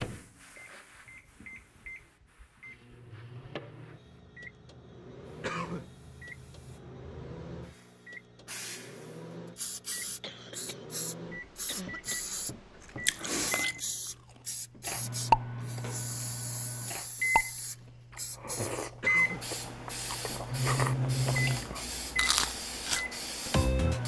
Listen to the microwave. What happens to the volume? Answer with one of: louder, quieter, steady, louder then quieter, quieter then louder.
louder.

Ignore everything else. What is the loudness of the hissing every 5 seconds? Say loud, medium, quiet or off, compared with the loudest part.
quiet, medium, loud, loud, loud.